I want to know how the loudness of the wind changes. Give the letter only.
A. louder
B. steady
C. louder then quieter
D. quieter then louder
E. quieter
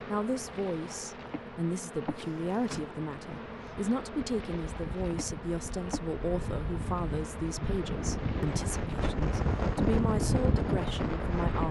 A.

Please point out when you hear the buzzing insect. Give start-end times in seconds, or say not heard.
0.0-11.6.